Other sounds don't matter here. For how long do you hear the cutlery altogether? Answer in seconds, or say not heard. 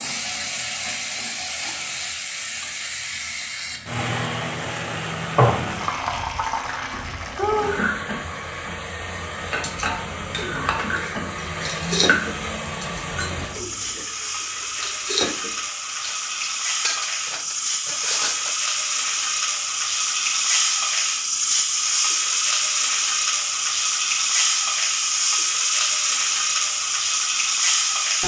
9 s.